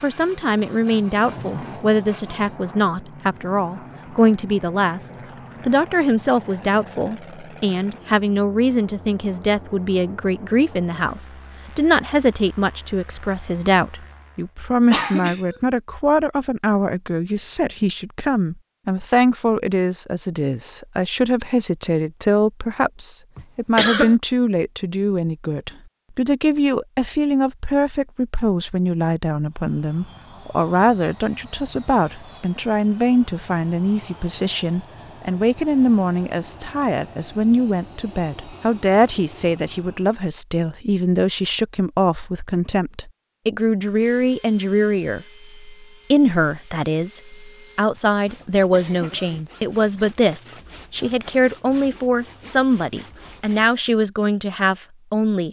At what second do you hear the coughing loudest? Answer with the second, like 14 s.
24 s.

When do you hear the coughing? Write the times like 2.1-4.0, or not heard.
14.9-15.4, 23.4-24.1, 47.9-49.5.